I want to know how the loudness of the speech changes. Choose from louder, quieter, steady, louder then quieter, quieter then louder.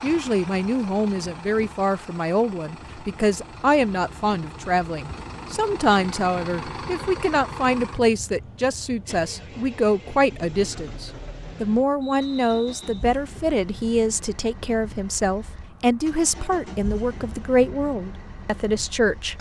steady.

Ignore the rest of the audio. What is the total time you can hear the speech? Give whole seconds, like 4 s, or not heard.
19 s.